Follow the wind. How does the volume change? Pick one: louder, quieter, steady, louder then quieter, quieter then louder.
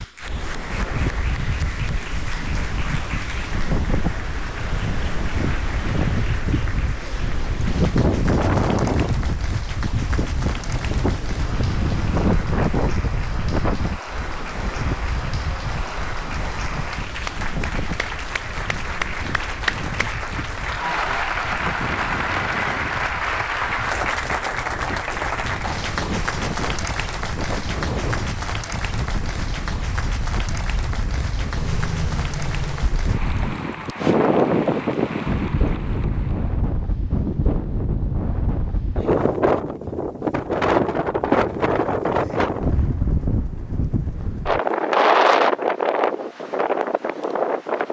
quieter then louder.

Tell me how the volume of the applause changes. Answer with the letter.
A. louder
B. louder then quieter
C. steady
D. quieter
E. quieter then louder
B.